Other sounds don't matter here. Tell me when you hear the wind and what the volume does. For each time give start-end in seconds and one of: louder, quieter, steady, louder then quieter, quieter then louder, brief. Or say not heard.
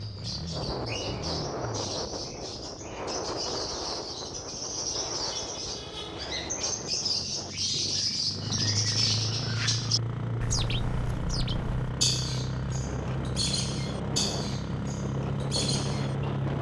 0.0-16.5 quieter then louder.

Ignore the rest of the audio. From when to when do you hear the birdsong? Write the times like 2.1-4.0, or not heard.
0.0-16.3.